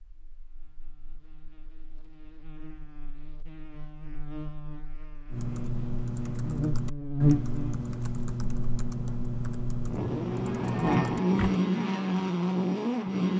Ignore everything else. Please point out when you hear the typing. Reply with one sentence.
The typing can be heard from 5.3 to 11.6 s.